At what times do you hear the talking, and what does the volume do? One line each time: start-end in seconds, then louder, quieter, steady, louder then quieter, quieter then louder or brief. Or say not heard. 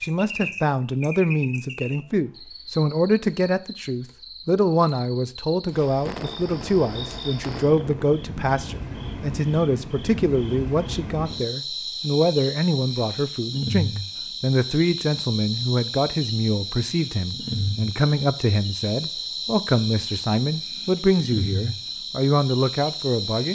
0.0-23.5 steady.